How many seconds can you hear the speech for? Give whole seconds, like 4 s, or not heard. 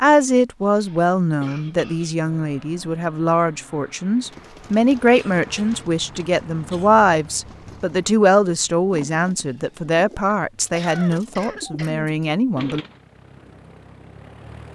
13 s.